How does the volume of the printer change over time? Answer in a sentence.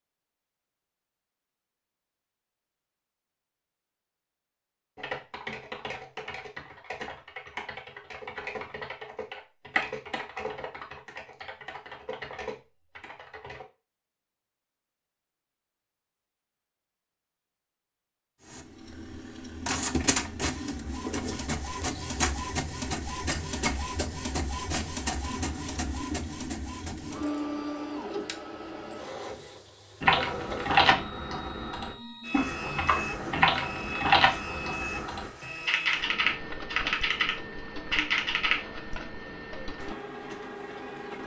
The volume of the printer goes down.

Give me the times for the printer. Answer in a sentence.
The printer can be heard from 18.4 to 41.2 s.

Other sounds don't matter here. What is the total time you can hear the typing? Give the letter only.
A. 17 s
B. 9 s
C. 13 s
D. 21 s
A.